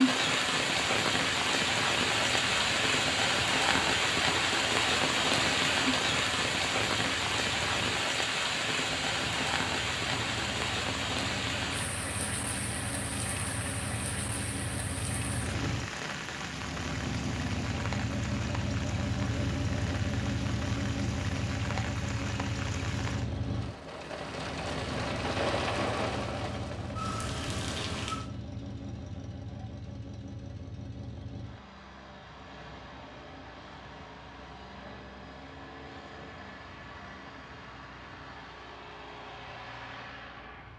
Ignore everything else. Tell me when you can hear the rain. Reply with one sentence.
You can hear the rain from 0.0 to 28.3 s.